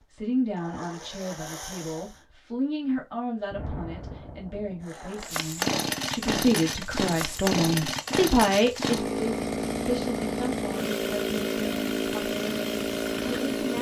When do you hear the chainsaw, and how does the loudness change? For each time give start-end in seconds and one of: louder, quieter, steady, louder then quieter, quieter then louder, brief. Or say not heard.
0.0-2.2 brief
4.8-13.7 steady.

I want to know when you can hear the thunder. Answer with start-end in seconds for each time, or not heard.
3.5-4.8.